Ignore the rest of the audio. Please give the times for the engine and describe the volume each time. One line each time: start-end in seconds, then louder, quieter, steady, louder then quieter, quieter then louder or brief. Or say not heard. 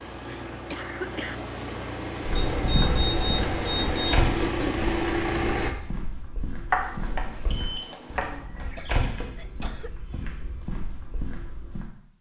0.0-5.8 louder.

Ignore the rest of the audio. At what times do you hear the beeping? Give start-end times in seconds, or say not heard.
2.4-4.2, 6.7-8.2.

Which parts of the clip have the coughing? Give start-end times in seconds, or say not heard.
0.7-1.4, 4.4-4.8, 8.2-10.2.